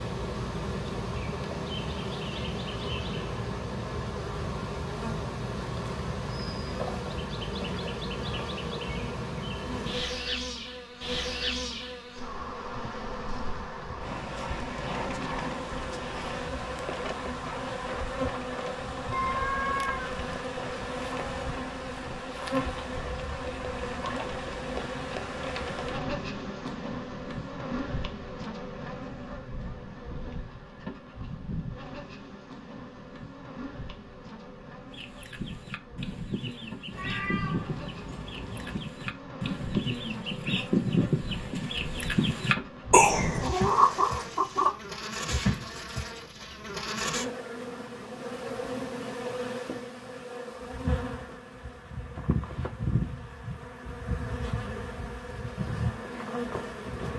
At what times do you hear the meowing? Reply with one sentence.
You can hear the meowing from 19.1 to 20.1 s and from 36.9 to 38.8 s.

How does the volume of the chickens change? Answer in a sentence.
The loudness of the chickens goes up.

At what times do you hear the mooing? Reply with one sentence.
You can't hear the mooing here.